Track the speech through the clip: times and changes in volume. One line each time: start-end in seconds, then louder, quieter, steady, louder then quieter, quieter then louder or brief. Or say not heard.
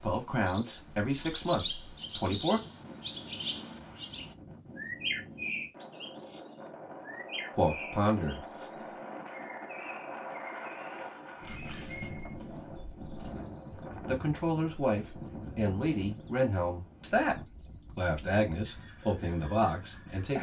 0.0-2.6 brief
7.5-8.4 brief
13.7-20.3 steady.